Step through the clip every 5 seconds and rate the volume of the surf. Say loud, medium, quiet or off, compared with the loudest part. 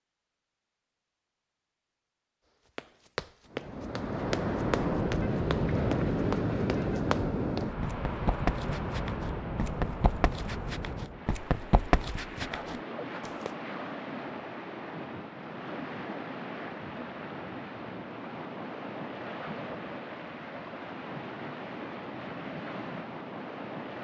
loud, loud, medium, medium, medium.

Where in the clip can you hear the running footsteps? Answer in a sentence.
You can hear the running footsteps from 2.8 to 13.5 s.